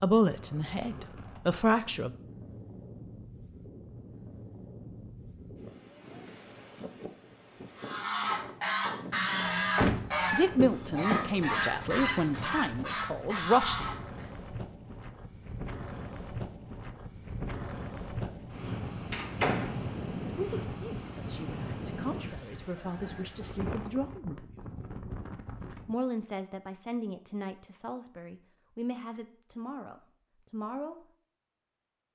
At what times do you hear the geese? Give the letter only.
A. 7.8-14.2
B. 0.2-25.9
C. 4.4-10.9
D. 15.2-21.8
A.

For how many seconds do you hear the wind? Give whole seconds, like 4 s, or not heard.
26 s.